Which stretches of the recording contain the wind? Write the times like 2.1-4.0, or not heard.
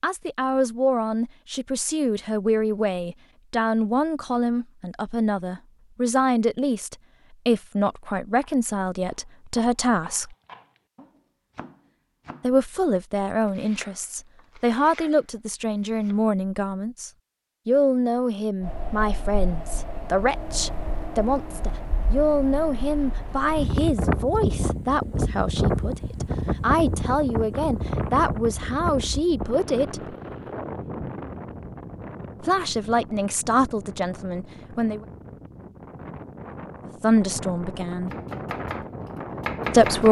18.6-40.0.